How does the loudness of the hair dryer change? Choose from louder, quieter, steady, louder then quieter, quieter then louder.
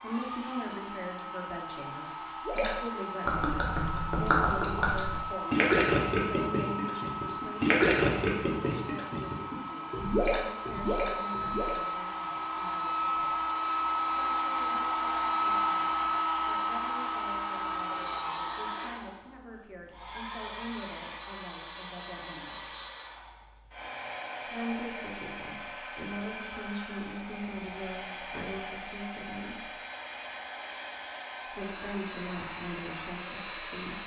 louder then quieter.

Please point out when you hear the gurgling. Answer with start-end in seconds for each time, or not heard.
2.5-11.8.